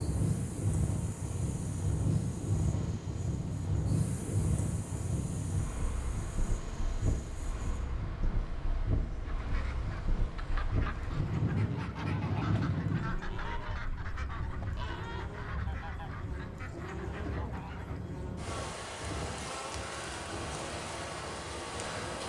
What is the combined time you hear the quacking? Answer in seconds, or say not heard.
9 s.